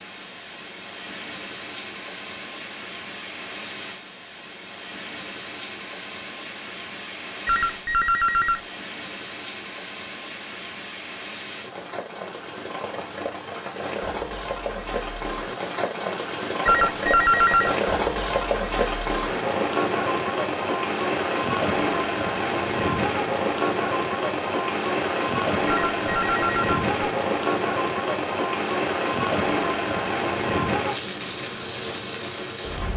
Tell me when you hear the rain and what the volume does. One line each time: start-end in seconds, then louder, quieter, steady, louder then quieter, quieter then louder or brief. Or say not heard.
0.0-32.9 louder.